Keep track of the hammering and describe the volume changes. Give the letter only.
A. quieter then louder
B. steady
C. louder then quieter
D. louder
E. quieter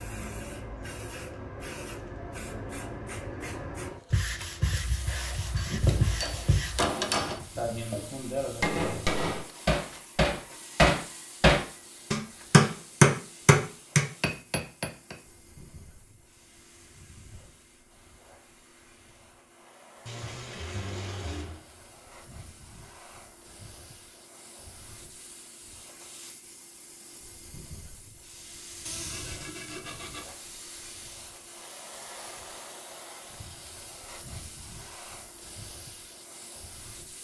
D.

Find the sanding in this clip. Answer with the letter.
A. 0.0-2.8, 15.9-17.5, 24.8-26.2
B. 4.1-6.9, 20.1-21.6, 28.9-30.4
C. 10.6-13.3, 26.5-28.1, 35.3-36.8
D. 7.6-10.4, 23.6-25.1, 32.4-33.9
B.